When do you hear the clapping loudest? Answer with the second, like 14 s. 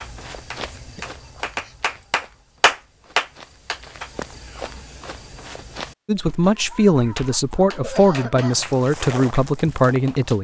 3 s.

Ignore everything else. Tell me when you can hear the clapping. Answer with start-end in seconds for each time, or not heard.
0.0-4.1, 7.2-10.3.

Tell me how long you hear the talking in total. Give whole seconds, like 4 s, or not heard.
4 s.